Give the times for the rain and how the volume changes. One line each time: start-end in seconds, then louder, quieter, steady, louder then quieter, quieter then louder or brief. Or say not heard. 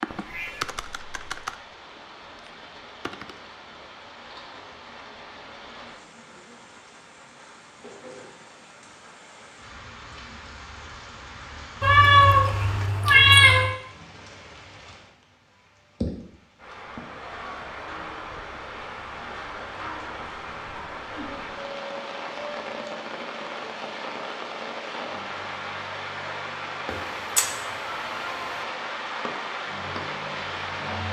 0.0-31.0 louder.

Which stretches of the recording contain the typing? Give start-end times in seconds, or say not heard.
0.0-3.4.